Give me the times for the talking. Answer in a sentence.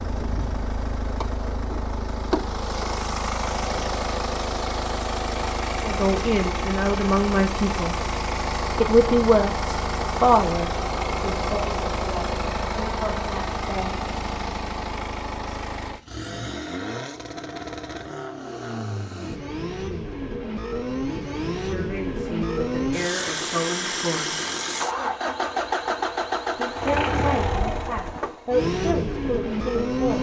You can hear the talking from 5.8 to 8.0 s, from 8.8 to 14.0 s, from 21.6 to 24.4 s and from 26.6 to 30.1 s.